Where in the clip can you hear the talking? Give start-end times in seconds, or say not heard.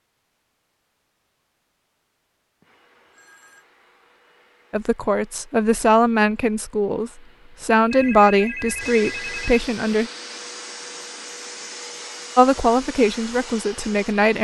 4.7-10.1, 12.3-14.4.